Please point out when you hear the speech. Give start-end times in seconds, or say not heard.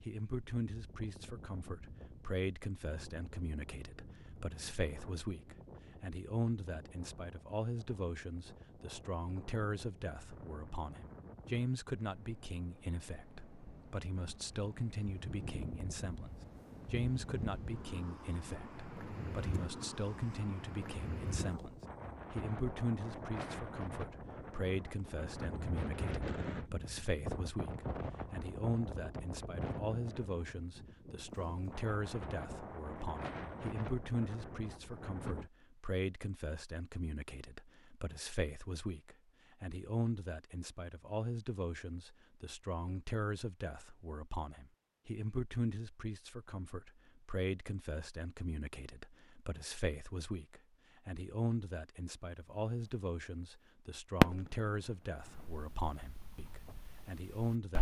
0.0-57.7.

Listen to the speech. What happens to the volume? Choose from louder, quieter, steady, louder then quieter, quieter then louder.
steady.